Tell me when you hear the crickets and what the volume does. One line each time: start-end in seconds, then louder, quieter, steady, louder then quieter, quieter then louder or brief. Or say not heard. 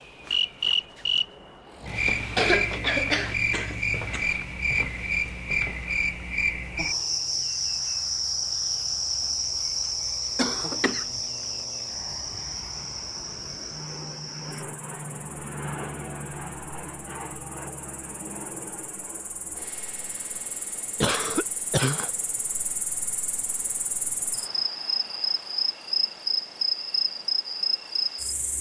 0.0-28.5 quieter then louder.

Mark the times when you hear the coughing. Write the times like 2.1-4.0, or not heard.
2.4-4.3, 10.3-11.2, 21.0-22.1.